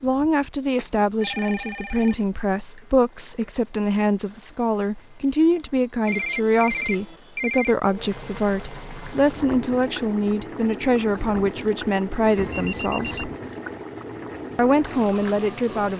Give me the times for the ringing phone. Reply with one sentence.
The ringing phone can be heard from 0.8 to 2.4 s, from 6.0 to 7.8 s and from 12.3 to 13.3 s.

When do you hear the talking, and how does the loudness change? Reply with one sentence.
The talking can be heard from 0.0 to 13.3 s, at a steady volume; and briefly from 14.6 to 15.9 s.